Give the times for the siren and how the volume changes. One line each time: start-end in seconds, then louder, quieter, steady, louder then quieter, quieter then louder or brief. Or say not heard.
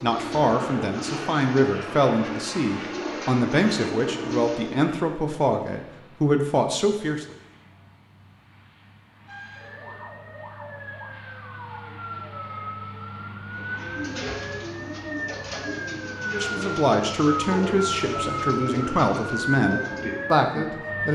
9.2-21.1 louder.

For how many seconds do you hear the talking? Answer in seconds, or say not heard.
12 s.